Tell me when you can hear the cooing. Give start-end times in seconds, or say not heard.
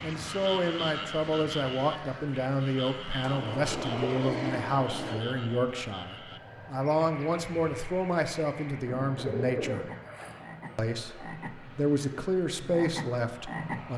3.2-5.2, 8.8-10.4.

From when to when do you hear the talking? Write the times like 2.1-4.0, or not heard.
0.0-9.9, 10.8-13.9.